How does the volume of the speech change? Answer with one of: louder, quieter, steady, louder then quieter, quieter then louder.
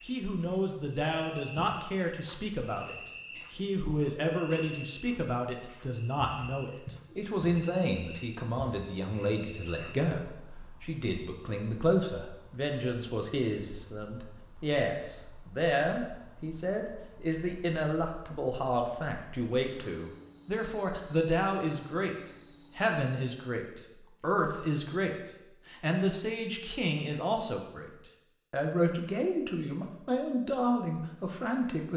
steady.